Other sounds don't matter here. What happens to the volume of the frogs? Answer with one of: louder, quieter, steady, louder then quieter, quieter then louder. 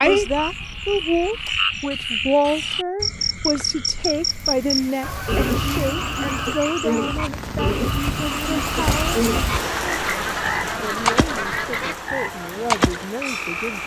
steady.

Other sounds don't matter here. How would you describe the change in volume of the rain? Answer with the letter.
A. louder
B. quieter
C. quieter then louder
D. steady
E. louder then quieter
E.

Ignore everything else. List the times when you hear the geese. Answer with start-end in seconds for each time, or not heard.
0.0-1.6, 5.0-6.7, 9.9-12.1.